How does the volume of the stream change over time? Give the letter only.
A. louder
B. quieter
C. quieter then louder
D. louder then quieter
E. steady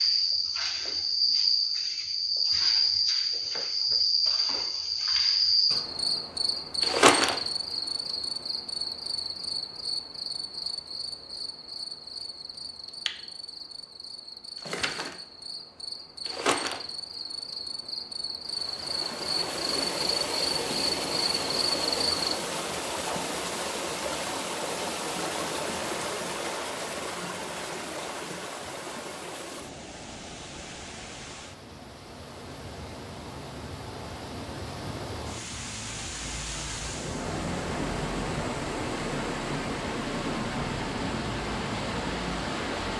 C.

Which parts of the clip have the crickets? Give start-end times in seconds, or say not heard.
0.0-22.4.